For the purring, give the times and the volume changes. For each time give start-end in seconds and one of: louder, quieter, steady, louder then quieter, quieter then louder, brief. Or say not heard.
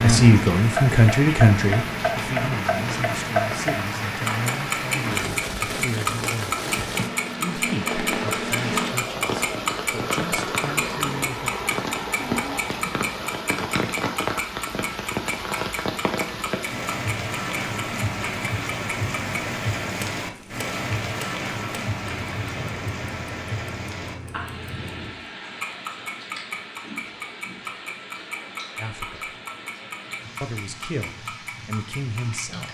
not heard.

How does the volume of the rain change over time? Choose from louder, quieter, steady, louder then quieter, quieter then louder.
quieter.